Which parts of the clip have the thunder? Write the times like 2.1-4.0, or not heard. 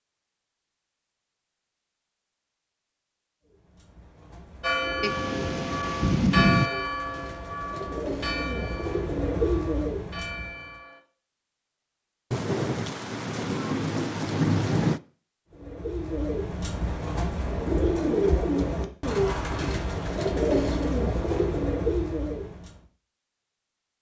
5.0-6.7, 12.3-15.0.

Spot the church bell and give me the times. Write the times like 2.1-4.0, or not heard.
4.6-11.0.